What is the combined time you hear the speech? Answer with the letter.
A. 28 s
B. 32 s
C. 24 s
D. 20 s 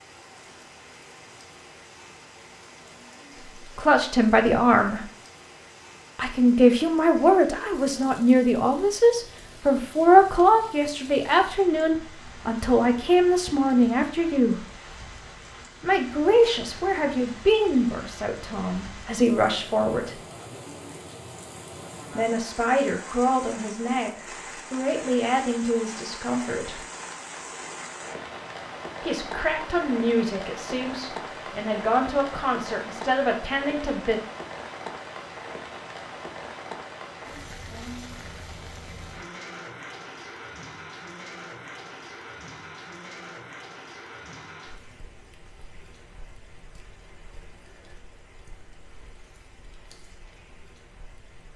C.